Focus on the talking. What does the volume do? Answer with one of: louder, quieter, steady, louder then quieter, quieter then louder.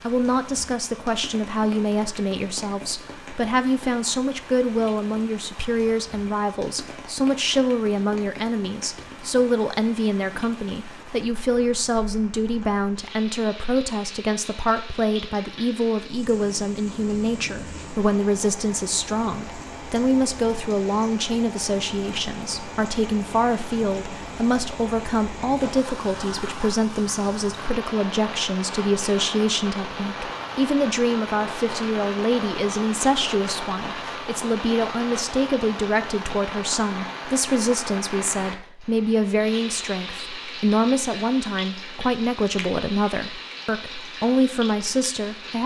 steady.